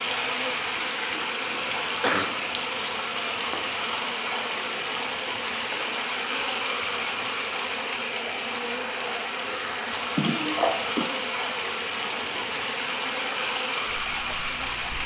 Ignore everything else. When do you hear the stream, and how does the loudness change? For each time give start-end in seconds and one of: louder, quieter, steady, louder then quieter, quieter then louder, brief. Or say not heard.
0.0-15.0 steady.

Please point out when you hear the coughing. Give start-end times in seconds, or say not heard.
1.6-2.3, 10.2-11.1.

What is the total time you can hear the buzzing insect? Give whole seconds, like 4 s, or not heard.
15 s.